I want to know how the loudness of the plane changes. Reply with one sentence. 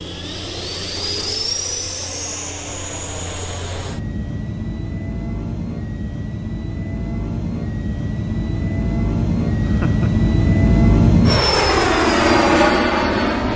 The loudness of the plane goes up.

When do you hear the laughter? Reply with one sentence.
The laughter can be heard from 9.6 to 10.2 s.